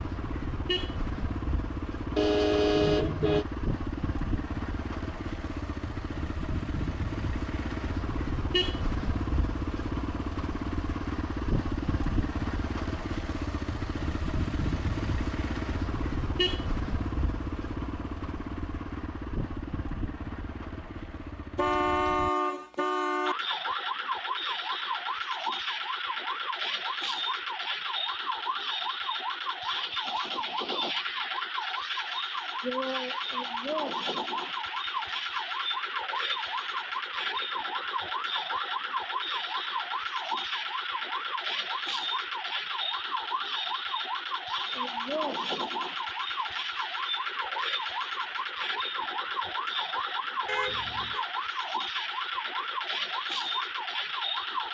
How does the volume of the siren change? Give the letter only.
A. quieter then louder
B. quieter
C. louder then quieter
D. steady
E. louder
D.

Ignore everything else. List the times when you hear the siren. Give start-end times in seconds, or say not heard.
23.2-54.6.